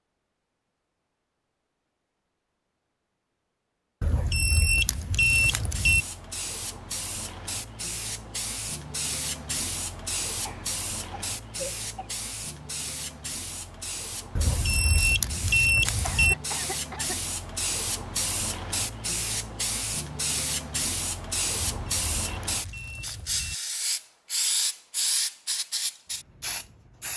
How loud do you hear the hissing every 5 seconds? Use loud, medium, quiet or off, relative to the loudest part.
off, medium, medium, loud, loud, loud.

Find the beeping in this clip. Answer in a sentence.
You can hear the beeping from 4.0 to 6.0 s, from 14.3 to 16.4 s and from 21.6 to 23.6 s.